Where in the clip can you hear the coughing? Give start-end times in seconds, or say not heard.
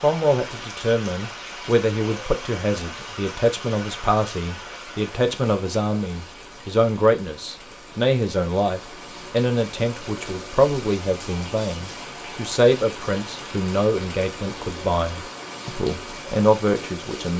not heard.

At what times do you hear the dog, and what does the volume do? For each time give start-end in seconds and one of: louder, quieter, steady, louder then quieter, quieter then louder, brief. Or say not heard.
not heard.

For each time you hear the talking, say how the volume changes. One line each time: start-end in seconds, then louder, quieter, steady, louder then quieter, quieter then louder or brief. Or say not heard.
0.0-17.3 steady.